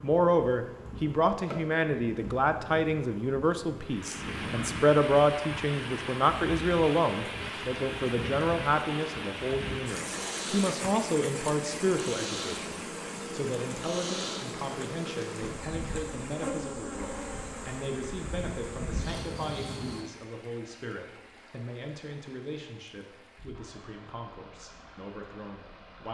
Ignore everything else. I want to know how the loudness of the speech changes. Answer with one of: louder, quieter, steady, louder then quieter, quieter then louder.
quieter.